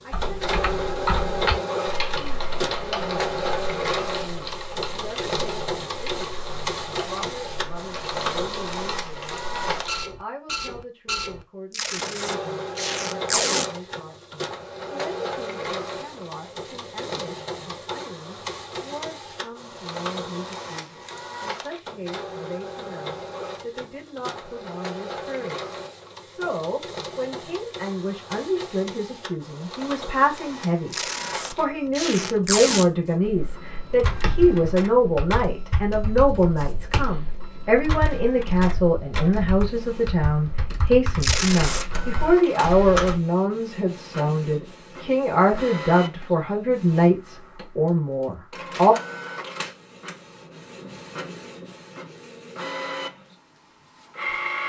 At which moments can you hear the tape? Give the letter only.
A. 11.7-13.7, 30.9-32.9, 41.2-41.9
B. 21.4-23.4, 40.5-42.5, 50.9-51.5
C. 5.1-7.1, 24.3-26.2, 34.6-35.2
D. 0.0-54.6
A.